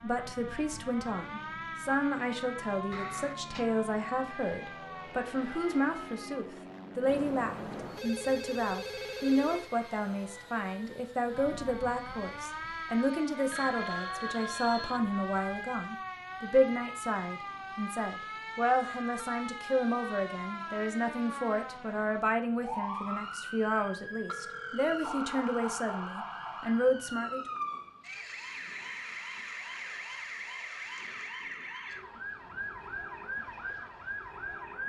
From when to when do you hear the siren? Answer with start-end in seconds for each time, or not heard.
0.0-6.5, 11.3-34.8.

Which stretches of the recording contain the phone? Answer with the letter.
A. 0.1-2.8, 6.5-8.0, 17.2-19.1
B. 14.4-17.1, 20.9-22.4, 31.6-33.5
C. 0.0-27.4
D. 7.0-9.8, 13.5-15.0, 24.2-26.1
D.